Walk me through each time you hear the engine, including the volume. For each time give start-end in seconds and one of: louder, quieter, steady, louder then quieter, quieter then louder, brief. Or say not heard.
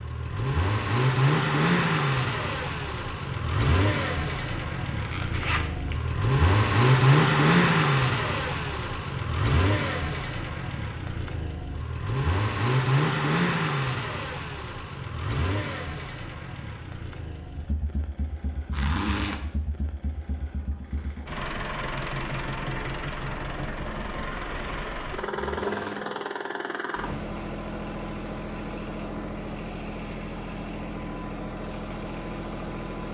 0.0-33.1 quieter.